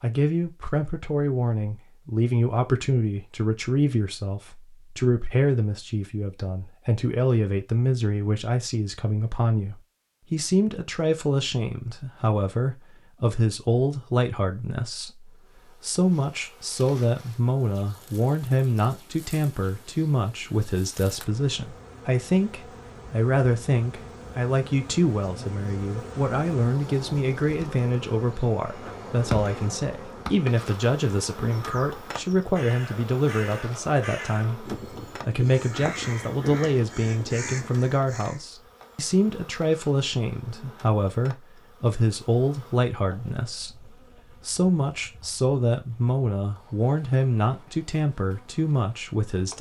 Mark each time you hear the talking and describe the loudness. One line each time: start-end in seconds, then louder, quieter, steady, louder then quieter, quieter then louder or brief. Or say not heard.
0.0-49.5 steady.